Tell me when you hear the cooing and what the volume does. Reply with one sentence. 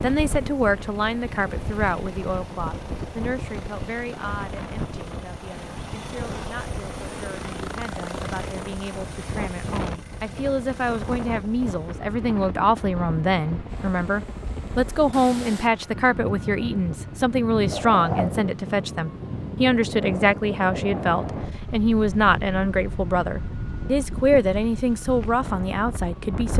You can't hear the cooing here.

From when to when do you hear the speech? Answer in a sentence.
You can hear the speech from 0.0 to 26.5 s.